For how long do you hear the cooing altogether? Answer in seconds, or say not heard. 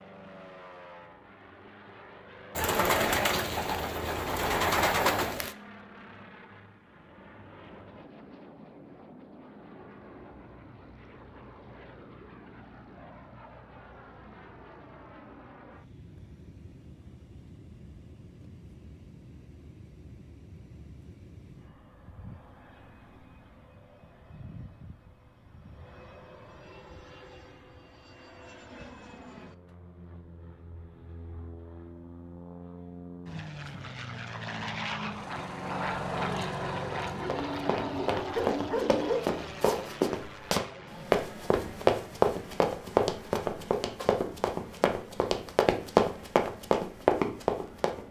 5 s.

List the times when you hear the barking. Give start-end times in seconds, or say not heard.
38.3-39.8.